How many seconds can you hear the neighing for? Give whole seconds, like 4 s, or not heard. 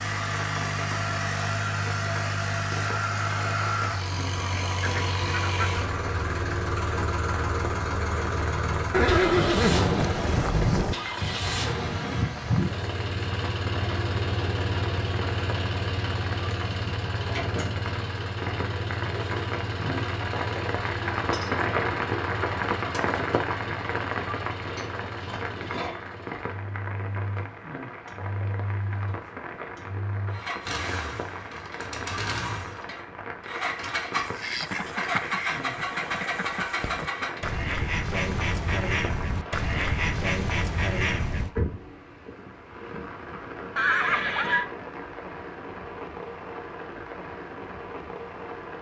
3 s.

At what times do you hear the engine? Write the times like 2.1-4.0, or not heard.
0.0-37.4.